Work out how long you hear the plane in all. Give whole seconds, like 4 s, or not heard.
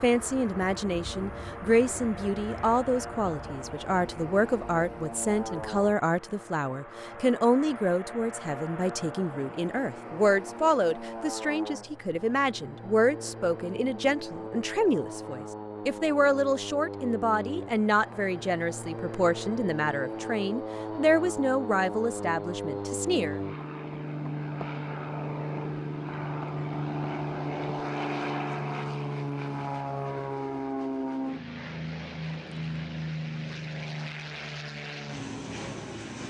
36 s.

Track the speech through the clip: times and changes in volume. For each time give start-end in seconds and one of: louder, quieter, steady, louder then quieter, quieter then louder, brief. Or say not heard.
0.0-23.4 steady.